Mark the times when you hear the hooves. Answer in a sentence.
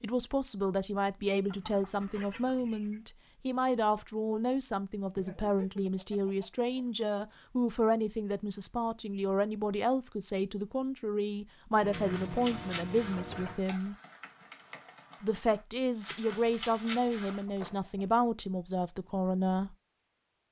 You can hear the hooves from 11.9 to 17.4 s.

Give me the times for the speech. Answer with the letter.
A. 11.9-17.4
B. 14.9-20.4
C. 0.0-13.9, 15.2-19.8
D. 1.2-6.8
C.